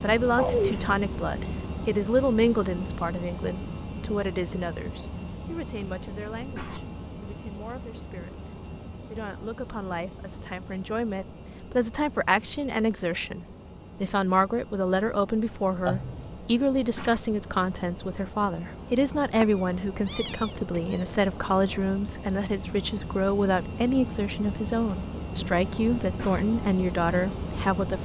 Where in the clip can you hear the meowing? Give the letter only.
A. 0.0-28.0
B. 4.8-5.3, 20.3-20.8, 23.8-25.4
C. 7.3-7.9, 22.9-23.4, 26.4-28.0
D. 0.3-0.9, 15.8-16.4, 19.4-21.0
D.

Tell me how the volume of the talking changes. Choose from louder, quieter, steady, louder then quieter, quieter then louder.
quieter then louder.